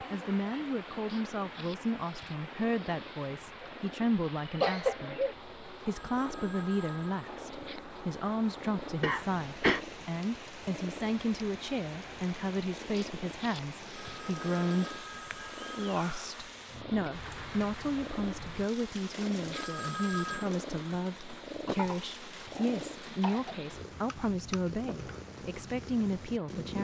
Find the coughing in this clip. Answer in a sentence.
The coughing can be heard from 4.5 to 5.3 s, from 9.0 to 9.8 s and from 21.6 to 23.6 s.